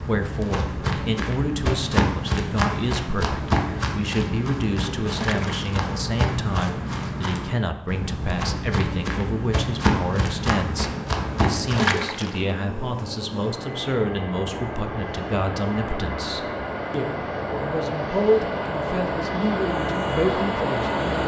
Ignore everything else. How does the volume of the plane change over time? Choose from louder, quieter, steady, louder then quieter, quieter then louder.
louder.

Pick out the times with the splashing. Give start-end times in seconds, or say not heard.
5.1-5.8, 11.7-12.4.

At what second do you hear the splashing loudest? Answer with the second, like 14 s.
12 s.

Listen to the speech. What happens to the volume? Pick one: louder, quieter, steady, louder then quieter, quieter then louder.
steady.